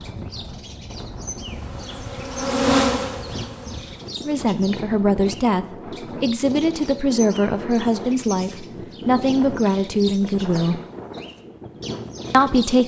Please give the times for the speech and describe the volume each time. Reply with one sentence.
The speech can be heard from 4.2 to 10.8 s, at a steady volume; and briefly from 12.3 to 12.8 s.